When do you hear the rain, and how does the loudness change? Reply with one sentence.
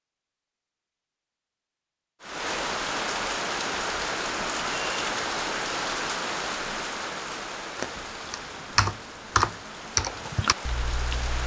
The rain can be heard from 2.2 to 11.4 s, getting quieter.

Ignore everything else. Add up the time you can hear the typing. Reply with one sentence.
The typing can be heard for 4 seconds in total.